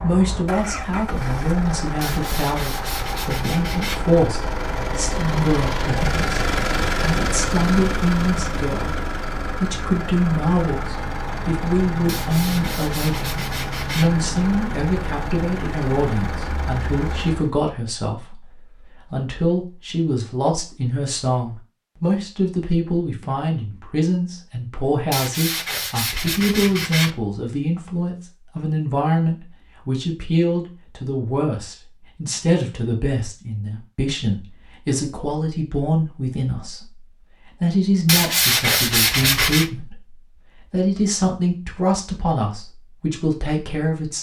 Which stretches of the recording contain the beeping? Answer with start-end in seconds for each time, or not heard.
not heard.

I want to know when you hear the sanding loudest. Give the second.
39 s.